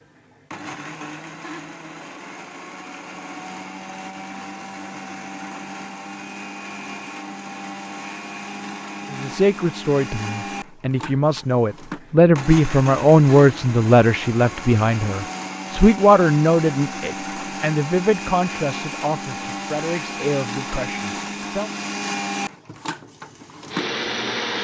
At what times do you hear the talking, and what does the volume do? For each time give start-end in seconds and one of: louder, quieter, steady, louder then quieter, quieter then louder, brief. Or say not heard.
9.1-21.7 louder then quieter.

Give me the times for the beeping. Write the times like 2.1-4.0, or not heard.
not heard.